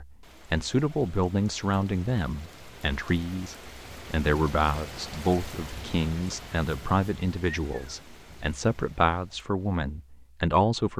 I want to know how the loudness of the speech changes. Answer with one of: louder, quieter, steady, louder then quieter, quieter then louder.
steady.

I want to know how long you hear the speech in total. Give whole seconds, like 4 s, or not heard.
11 s.